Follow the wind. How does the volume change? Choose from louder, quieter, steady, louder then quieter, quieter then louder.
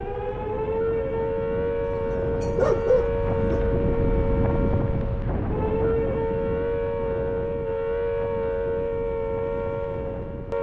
louder then quieter.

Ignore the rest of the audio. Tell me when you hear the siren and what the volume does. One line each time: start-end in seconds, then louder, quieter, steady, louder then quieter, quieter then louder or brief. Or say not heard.
0.0-10.5 steady.